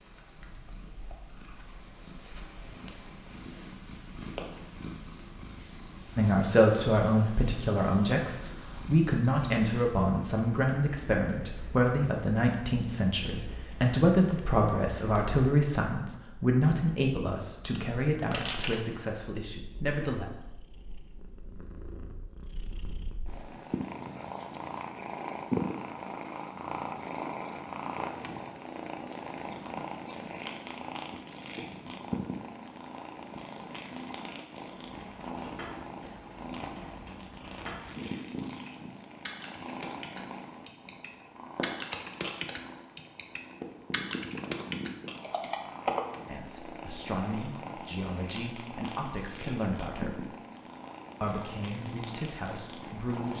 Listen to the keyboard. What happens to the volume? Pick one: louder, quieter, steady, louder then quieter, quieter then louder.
louder.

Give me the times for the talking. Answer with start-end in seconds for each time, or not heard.
6.2-20.2, 46.2-50.4, 51.2-53.3.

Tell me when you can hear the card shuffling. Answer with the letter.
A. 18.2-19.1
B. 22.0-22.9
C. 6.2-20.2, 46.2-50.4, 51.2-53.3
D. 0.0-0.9
A.